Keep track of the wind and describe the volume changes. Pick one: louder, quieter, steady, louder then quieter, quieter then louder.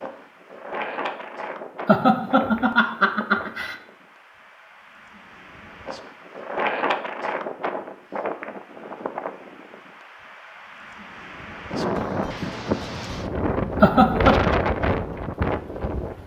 quieter then louder.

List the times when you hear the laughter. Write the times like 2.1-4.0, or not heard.
1.9-3.8, 13.8-14.5.